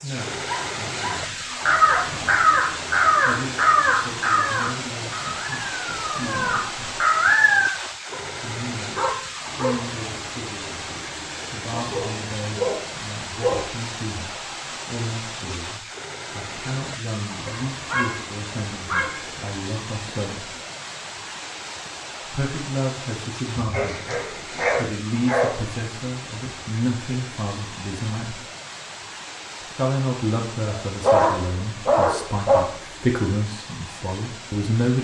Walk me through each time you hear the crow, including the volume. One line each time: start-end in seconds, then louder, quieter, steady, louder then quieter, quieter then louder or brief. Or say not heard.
1.6-7.7 quieter then louder.